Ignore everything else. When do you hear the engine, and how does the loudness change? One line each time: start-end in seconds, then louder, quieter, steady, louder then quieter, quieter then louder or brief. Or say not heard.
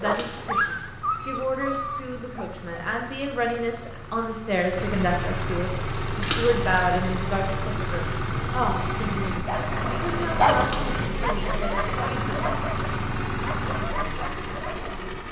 0.0-15.2 louder.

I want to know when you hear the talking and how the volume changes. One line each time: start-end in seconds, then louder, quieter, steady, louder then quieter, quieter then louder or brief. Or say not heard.
0.0-12.6 louder then quieter.